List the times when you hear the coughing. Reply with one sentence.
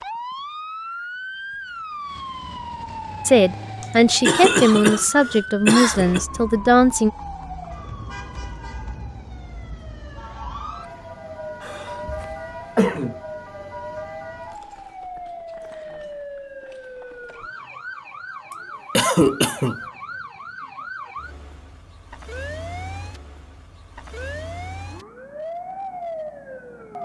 You can hear the coughing from 3.8 to 6.2 s, from 11.6 to 13.2 s and from 18.5 to 19.8 s.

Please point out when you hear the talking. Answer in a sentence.
The talking can be heard from 3.2 to 7.1 s.